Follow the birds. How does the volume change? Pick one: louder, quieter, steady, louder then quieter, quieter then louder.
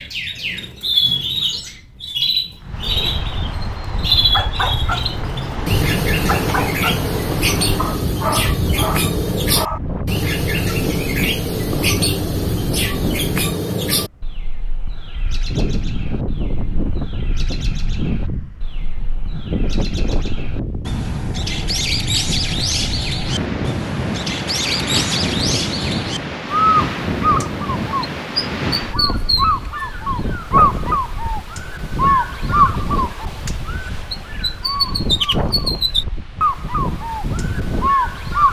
quieter then louder.